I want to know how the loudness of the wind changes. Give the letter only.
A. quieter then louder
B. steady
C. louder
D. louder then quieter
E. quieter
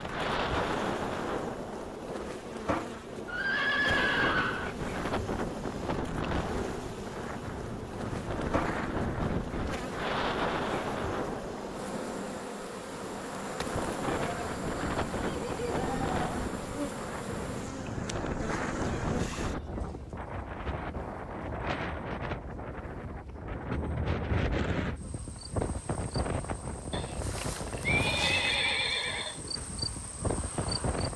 B.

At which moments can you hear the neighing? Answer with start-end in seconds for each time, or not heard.
3.2-4.8, 14.1-16.1, 26.9-29.4.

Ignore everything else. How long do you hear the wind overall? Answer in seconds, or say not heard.
31 s.